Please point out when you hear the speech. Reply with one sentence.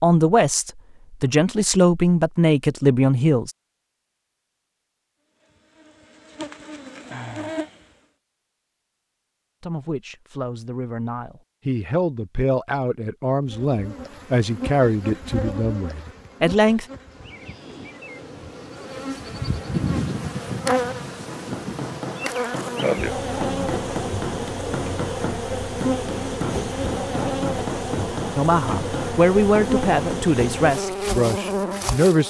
You can hear the speech from 0.0 to 3.5 s, from 9.6 to 16.9 s and from 28.4 to 32.2 s.